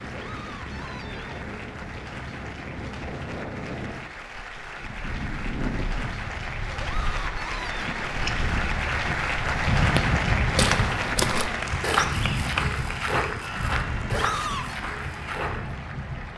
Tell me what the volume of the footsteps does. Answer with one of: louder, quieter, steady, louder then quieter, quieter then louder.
quieter.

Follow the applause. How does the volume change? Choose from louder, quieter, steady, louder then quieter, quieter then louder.
louder then quieter.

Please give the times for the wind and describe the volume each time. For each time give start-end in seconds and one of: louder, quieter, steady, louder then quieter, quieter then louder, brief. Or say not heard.
0.0-16.3 louder then quieter.